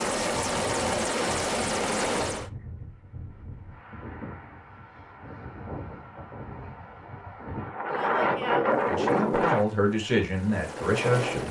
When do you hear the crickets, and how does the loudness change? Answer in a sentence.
You can't hear the crickets here.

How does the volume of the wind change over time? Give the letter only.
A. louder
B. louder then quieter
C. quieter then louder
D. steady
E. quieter
A.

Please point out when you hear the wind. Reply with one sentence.
The wind can be heard from 0.2 to 9.7 s.